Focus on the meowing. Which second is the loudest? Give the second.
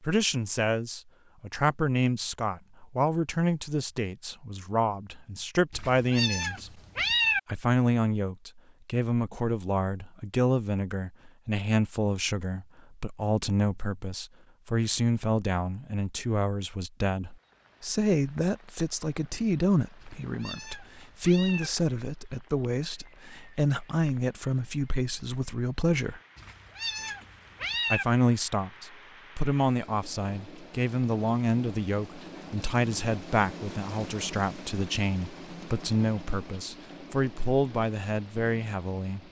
7 s.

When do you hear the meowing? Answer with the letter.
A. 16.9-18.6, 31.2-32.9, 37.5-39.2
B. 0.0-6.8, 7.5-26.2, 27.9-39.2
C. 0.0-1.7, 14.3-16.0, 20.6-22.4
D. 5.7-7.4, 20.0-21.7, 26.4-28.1
D.